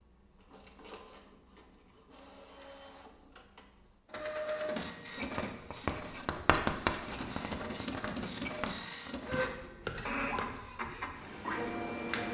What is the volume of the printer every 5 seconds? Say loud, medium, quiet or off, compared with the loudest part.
medium, loud, loud.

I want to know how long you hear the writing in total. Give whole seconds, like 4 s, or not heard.
5 s.